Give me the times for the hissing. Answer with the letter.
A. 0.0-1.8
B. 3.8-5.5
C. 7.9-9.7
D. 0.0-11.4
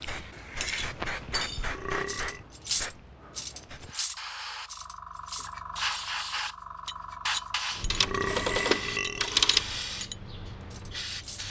D.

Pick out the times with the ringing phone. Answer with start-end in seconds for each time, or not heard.
7.9-9.7.